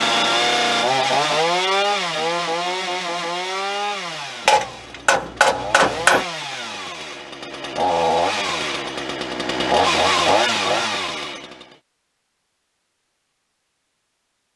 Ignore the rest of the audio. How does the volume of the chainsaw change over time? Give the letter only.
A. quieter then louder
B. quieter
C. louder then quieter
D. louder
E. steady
A.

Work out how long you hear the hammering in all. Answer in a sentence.
The hammering can be heard for 2 seconds in total.